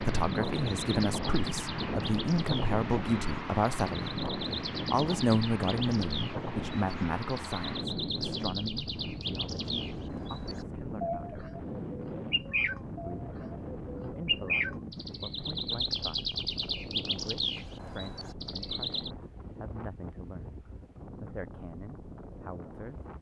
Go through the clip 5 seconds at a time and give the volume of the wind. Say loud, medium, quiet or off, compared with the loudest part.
loud, loud, medium, medium, quiet.